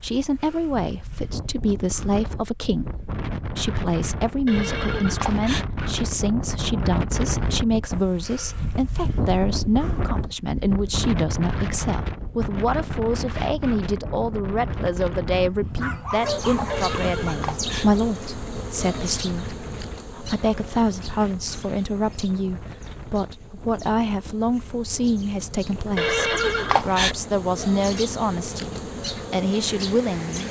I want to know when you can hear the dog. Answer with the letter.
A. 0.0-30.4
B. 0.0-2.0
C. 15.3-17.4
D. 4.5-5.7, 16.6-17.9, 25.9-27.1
C.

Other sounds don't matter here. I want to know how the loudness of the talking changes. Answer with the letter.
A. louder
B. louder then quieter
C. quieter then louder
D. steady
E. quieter
D.